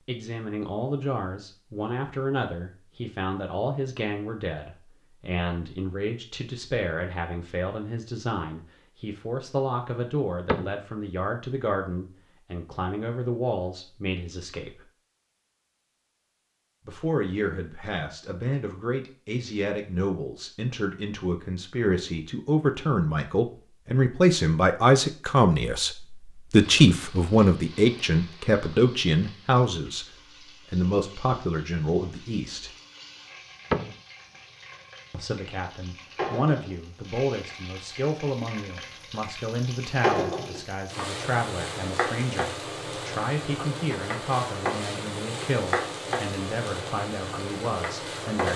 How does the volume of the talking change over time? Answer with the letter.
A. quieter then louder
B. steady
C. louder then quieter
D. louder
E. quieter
C.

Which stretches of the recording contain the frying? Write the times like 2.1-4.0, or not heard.
26.6-48.5.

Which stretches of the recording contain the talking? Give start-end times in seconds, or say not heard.
0.1-14.8, 16.9-32.7, 35.1-48.5.